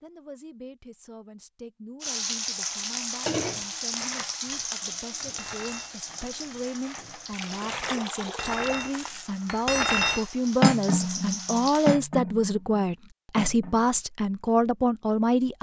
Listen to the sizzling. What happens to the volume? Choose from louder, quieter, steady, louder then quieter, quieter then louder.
quieter then louder.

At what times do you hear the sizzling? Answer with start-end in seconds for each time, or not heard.
2.0-11.9.